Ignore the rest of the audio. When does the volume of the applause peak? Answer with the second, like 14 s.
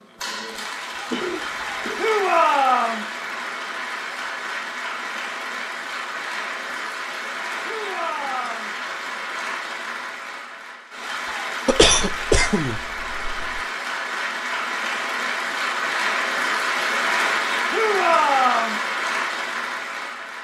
17 s.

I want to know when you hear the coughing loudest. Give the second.
12 s.